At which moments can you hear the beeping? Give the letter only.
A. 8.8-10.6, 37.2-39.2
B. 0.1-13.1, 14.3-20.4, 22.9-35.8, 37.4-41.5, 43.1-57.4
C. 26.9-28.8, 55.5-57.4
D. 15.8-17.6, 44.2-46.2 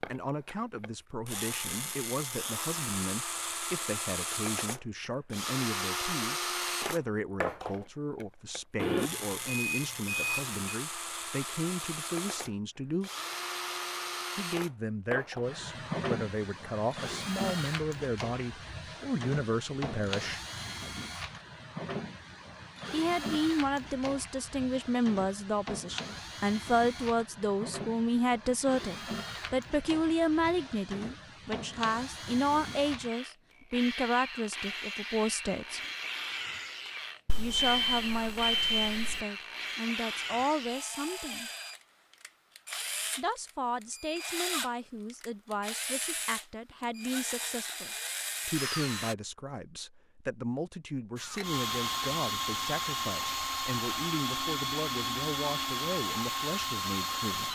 A.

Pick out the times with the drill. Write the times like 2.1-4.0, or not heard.
0.0-49.1, 51.1-57.4.